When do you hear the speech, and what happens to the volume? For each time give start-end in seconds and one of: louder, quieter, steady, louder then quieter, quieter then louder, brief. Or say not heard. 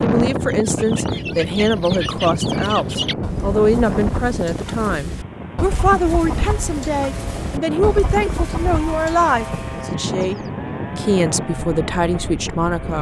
0.0-12.9 steady.